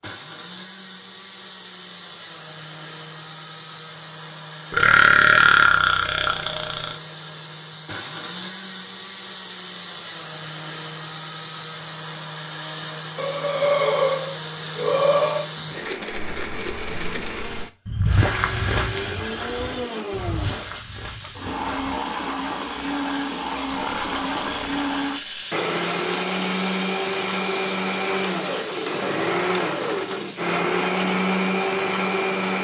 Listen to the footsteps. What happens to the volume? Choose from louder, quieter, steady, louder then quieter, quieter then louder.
louder then quieter.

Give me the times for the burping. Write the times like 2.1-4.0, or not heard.
4.7-7.0, 13.2-15.5, 23.7-25.4.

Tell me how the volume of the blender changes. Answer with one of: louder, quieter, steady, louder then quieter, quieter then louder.
louder.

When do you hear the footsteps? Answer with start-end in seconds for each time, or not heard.
16.1-21.9.